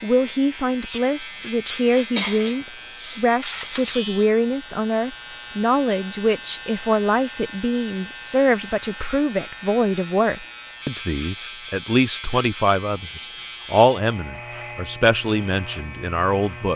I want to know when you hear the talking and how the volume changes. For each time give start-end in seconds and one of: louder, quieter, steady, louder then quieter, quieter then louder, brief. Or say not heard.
0.0-16.7 steady.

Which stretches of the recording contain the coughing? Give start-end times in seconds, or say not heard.
1.9-4.0.